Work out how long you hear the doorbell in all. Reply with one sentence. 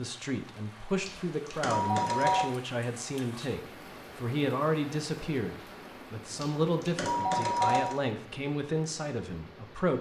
The doorbell can be heard for 3 seconds in total.